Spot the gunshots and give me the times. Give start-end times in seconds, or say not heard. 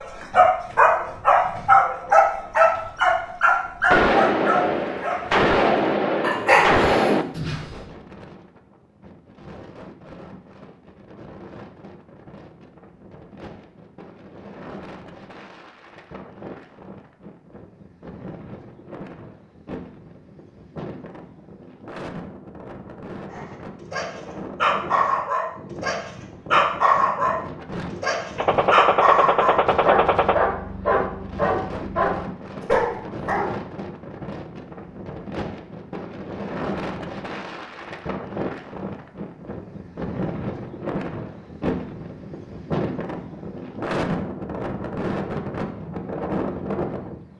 3.9-7.2, 28.4-30.4.